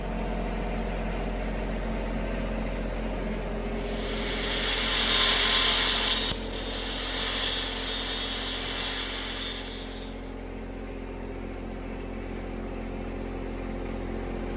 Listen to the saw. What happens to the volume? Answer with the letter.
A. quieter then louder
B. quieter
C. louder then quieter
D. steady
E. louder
B.